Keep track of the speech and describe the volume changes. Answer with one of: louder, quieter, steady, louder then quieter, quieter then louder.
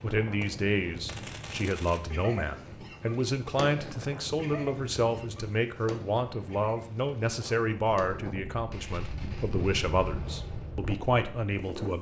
steady.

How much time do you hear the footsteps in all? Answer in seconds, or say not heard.
not heard.